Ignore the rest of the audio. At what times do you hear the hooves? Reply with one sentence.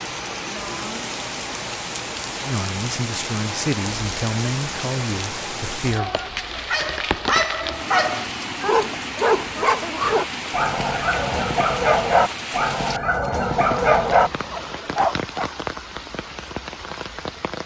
You can't hear the hooves here.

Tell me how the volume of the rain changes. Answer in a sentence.
The volume of the rain stays about the same.